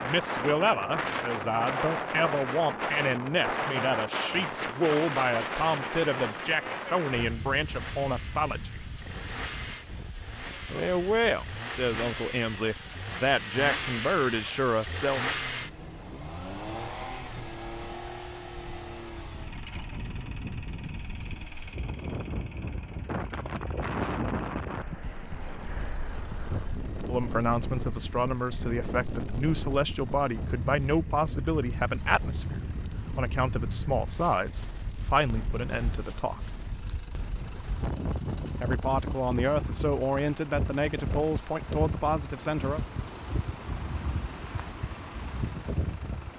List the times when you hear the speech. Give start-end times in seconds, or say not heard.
0.0-8.8, 10.7-15.2, 27.1-36.5, 38.6-42.8.